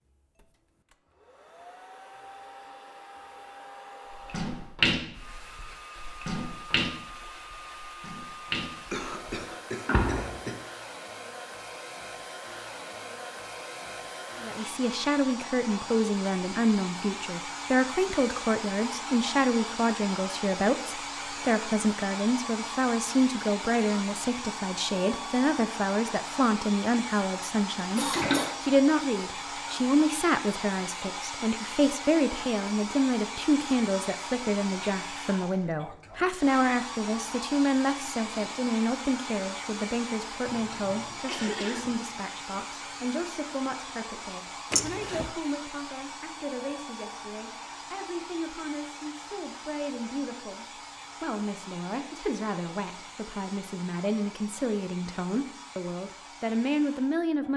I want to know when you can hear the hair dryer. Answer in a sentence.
You can hear the hair dryer from 0.0 to 57.5 s.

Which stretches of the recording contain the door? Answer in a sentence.
The door can be heard from 44.7 to 45.3 s.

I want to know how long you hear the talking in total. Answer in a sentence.
You can hear the talking for 43 seconds altogether.